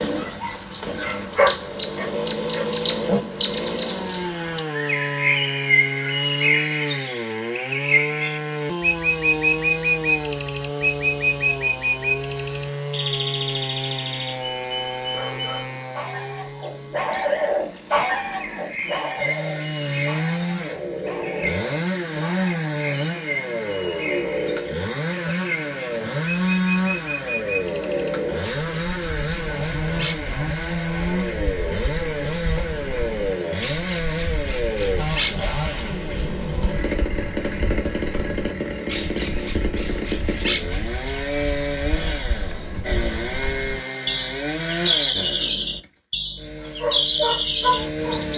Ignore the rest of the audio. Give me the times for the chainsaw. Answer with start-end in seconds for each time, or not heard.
0.0-48.3.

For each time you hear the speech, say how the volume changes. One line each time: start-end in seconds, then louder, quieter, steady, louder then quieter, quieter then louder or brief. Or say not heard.
not heard.